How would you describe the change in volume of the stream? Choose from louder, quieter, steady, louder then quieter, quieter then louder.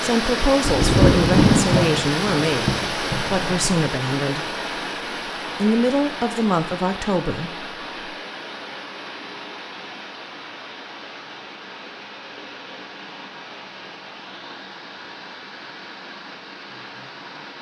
quieter.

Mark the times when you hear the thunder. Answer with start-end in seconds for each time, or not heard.
0.6-3.9.